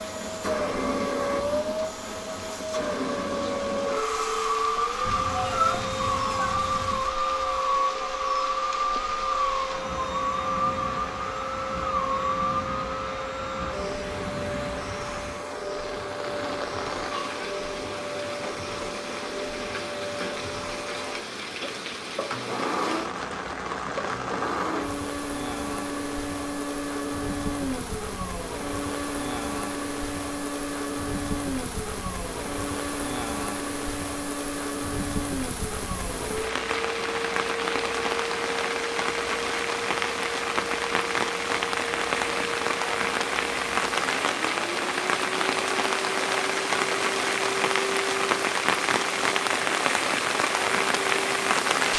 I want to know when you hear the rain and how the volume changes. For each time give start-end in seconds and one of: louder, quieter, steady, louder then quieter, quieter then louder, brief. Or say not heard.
0.0-51.9 louder.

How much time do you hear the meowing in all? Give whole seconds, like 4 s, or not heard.
2 s.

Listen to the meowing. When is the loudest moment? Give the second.
6 s.